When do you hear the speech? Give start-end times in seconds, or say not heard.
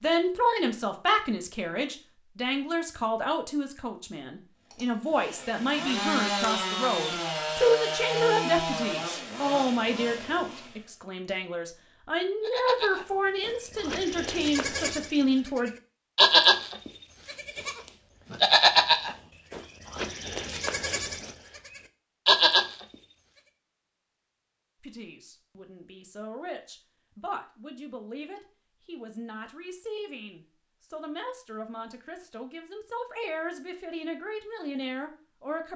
0.0-15.7, 24.8-35.7.